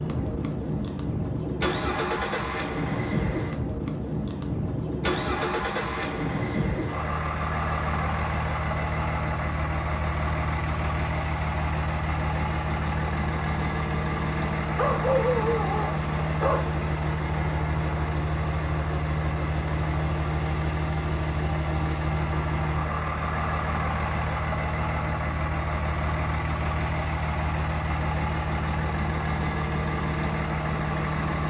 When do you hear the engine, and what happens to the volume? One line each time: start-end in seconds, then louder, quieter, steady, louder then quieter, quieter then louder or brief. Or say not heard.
0.0-31.4 steady.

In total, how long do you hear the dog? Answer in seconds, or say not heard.
2 s.